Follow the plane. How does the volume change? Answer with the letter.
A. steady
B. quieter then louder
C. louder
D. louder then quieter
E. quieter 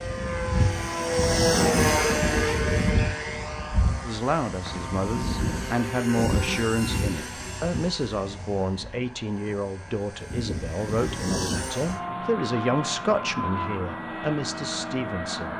E.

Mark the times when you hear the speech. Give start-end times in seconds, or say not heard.
4.0-15.5.